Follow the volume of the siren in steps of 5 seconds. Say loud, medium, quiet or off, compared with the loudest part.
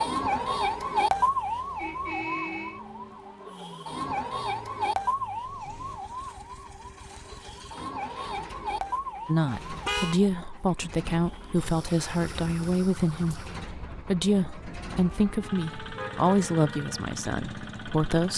loud, medium, quiet, quiet.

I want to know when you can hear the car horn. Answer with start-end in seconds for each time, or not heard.
1.8-2.8, 9.4-10.2, 15.9-16.5.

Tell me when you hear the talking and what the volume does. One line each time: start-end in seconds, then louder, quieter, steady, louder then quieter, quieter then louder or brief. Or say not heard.
9.2-18.3 steady.